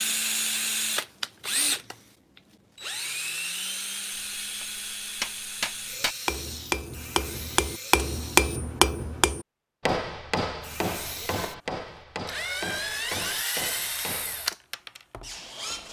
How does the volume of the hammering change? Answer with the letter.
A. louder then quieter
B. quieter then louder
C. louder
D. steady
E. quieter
A.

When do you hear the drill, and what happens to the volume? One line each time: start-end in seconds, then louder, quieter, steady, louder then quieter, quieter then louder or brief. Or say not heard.
0.0-8.6 quieter
10.6-15.8 louder then quieter.